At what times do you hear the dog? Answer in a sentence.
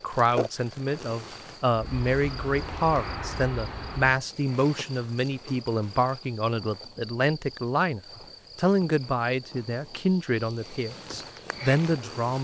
The dog can't be heard in this clip.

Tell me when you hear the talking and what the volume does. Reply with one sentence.
The talking can be heard from 0.0 to 12.3 s, at a steady volume.